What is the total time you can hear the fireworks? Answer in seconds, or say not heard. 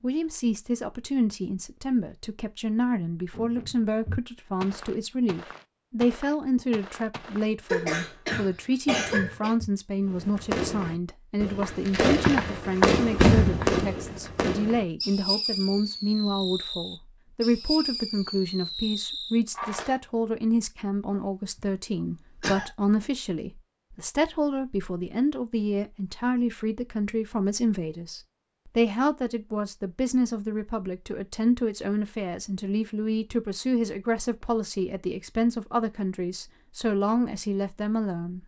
10 s.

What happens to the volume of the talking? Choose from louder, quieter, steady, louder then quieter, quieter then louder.
steady.